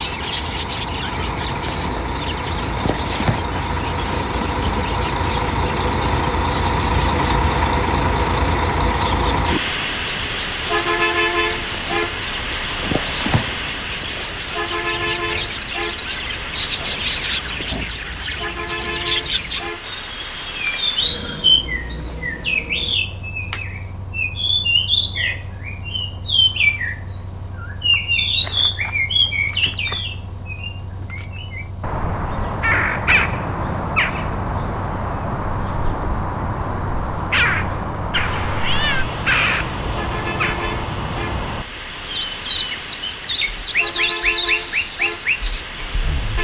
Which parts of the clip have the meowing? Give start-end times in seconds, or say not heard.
14.9-15.4, 38.1-39.0.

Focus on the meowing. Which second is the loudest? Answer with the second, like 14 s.
39 s.